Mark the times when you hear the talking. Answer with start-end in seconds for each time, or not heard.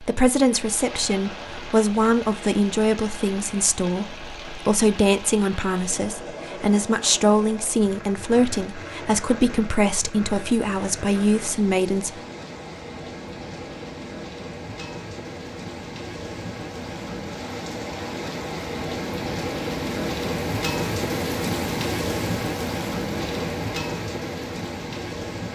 0.0-12.2.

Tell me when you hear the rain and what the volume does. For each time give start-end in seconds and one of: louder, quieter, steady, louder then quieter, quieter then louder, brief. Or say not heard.
0.0-25.4 louder.